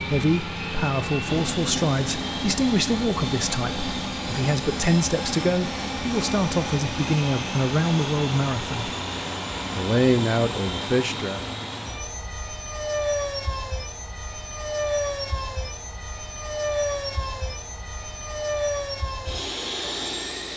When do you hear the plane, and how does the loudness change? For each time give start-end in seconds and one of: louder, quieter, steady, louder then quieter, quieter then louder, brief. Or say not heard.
0.0-20.5 steady.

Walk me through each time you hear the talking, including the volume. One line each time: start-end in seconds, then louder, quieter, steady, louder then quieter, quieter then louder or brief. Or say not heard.
0.1-8.9 steady
9.8-11.4 brief.